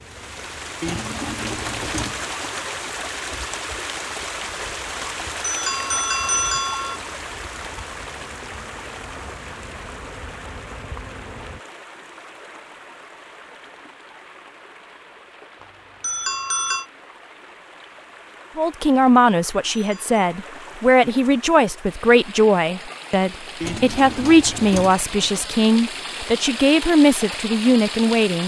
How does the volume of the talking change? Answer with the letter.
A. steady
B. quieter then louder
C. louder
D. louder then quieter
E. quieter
A.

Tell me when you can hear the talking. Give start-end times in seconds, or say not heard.
18.6-28.4.